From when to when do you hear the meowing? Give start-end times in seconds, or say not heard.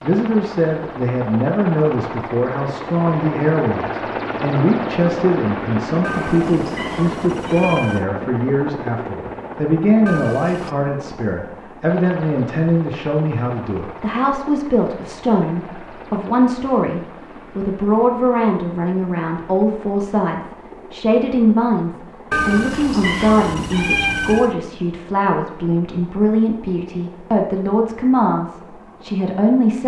6.0-8.1, 10.1-10.8, 22.3-24.6.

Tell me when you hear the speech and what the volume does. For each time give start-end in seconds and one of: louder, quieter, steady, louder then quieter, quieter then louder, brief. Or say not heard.
0.0-29.8 steady.